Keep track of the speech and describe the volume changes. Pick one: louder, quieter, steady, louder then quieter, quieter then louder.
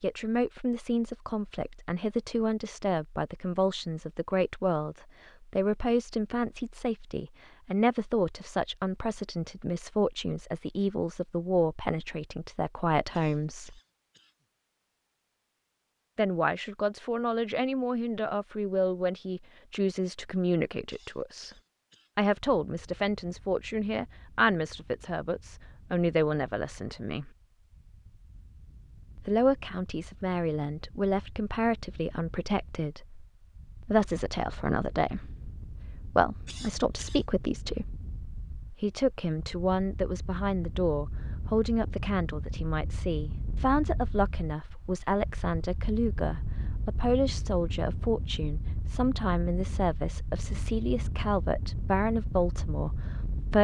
steady.